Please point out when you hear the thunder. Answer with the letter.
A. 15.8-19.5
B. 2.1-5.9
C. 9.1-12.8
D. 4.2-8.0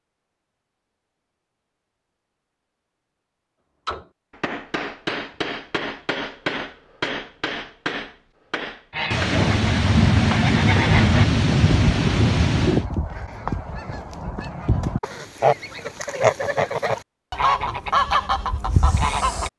C.